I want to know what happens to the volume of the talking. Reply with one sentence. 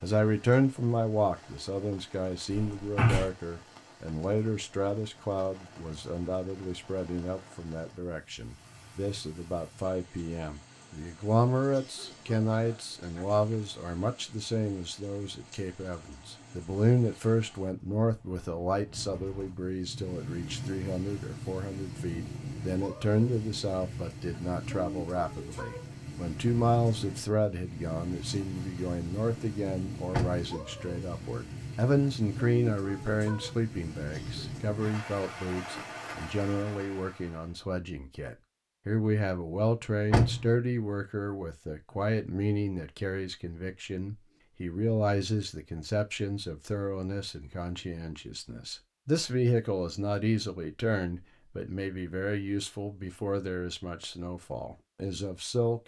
The volume of the talking stays about the same.